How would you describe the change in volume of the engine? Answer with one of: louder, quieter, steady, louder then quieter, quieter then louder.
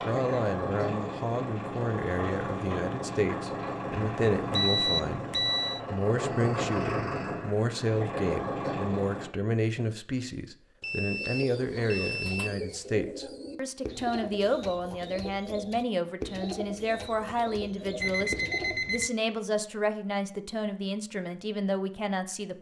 steady.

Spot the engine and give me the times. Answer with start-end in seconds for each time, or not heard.
0.0-9.3.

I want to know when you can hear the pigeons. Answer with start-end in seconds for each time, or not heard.
11.2-18.8.